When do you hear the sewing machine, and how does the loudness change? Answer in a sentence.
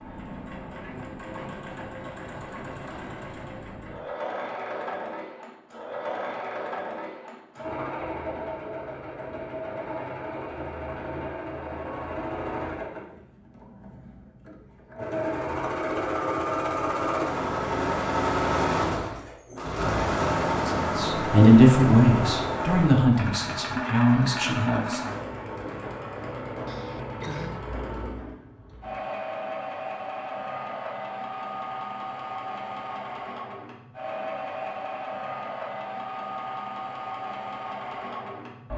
You can hear the sewing machine from 0.0 to 38.7 s, getting louder then quieter.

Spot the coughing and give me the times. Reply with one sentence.
The coughing can be heard from 26.6 to 27.6 s.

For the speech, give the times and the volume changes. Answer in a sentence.
You can hear the speech from 20.6 to 25.1 s, getting quieter then louder.